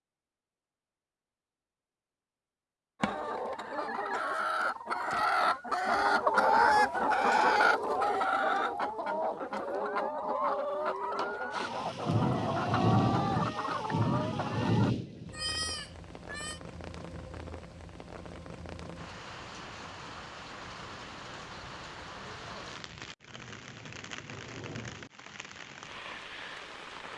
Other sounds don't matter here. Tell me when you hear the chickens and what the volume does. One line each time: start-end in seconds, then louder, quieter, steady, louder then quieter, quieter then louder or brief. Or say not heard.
3.0-14.9 louder then quieter.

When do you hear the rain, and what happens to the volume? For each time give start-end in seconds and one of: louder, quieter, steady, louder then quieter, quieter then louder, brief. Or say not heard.
11.5-27.1 quieter.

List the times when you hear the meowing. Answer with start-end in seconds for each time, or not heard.
15.3-16.6.